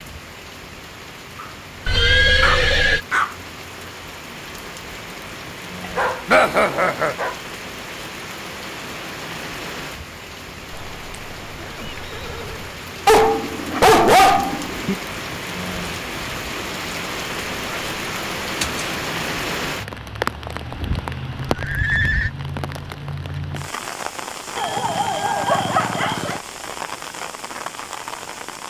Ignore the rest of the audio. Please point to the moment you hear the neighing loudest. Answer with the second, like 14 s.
2 s.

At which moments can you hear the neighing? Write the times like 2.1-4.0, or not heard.
1.9-3.0, 10.7-12.7, 20.7-22.3.